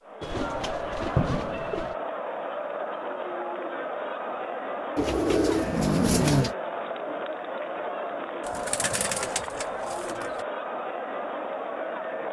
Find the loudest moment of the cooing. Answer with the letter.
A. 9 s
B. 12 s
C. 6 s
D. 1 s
C.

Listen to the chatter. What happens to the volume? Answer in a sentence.
The volume of the chatter stays about the same.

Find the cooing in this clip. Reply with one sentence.
The cooing can be heard from 0.2 to 1.9 s, from 5.0 to 6.5 s and from 8.4 to 10.4 s.